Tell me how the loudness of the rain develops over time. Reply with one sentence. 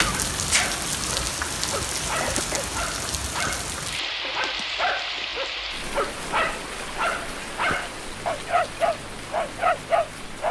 The loudness of the rain goes down.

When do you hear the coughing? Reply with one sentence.
The coughing can be heard from 2.2 to 2.7 s.